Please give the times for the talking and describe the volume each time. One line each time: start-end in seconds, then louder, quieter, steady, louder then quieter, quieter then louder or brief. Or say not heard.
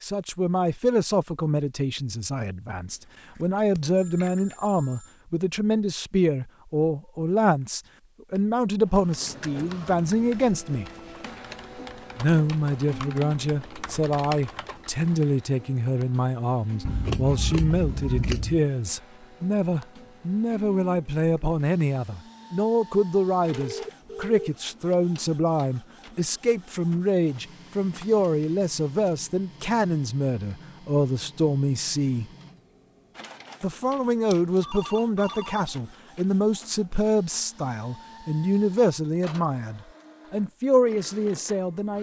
0.0-10.8 steady
12.2-32.3 steady
33.6-41.9 steady.